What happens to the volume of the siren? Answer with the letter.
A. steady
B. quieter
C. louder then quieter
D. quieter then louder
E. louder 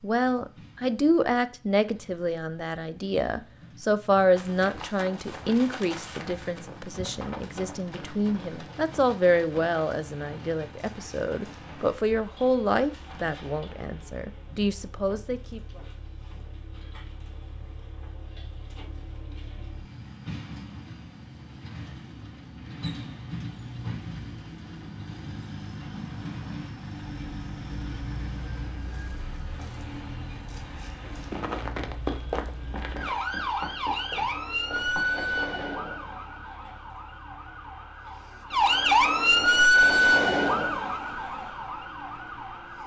E.